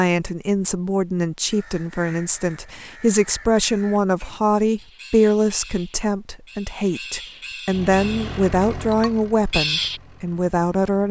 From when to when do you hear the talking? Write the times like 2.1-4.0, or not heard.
0.0-11.0.